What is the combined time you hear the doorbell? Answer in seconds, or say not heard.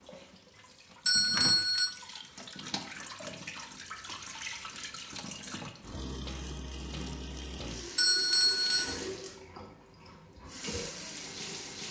2 s.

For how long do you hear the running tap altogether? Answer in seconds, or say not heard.
12 s.